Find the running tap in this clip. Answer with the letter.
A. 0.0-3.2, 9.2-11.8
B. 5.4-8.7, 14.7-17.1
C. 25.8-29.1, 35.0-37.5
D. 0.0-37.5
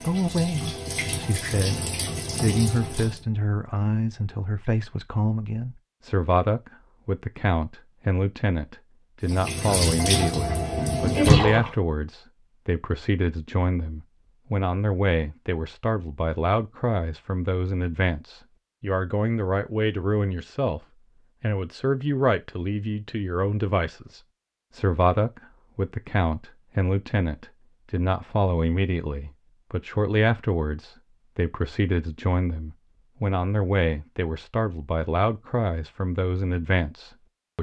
A.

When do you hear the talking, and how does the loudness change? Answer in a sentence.
You can hear the talking from 0.0 to 37.5 s, at a steady volume.